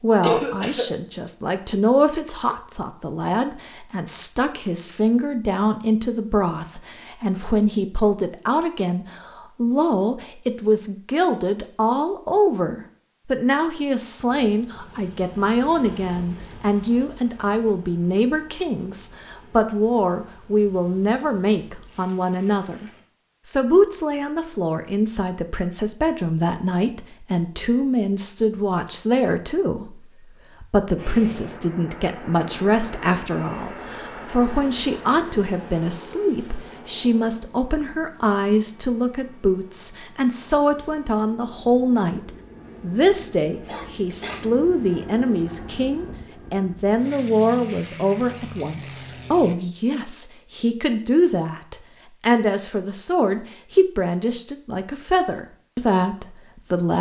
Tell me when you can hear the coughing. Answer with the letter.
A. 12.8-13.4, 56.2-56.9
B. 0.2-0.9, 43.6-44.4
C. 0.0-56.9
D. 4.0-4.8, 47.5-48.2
B.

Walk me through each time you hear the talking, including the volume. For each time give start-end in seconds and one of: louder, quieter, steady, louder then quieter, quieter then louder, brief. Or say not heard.
0.0-56.9 steady.